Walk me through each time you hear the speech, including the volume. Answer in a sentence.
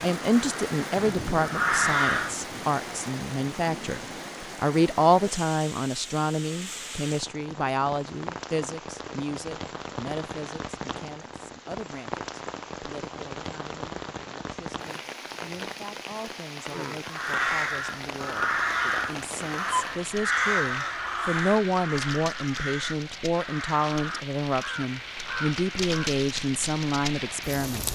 The speech can be heard from 0.0 to 27.9 s, getting quieter then louder.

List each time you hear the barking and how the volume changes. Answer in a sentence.
You can't hear the barking here.